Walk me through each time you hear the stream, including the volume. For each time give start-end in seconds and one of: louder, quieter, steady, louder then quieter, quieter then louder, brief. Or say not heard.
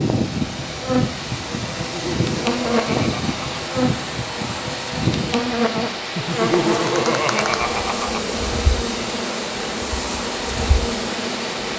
0.0-11.7 steady.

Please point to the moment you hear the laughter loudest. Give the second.
7 s.